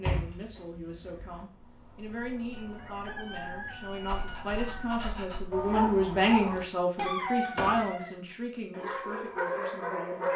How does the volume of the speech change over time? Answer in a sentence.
The loudness of the speech goes up, then down.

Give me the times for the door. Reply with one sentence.
You can hear the door from 0.0 to 1.4 s and from 7.5 to 8.1 s.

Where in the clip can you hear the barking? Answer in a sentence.
You can hear the barking from 3.8 to 10.3 s.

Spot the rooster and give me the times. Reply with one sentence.
You can hear the rooster from 2.5 to 5.1 s.